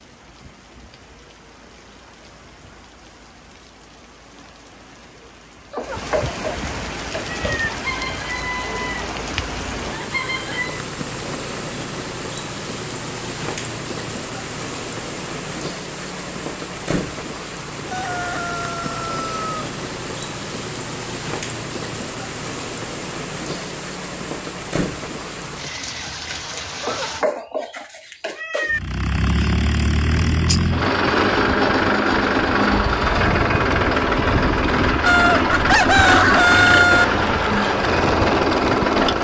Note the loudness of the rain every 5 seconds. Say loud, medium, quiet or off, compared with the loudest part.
quiet, loud, loud, loud, loud, loud, off, off.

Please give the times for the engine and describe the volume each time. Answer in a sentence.
You can hear the engine from 28.7 to 39.1 s, at a steady volume.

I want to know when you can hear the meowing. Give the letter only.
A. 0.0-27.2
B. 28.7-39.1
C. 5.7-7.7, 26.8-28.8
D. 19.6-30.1
C.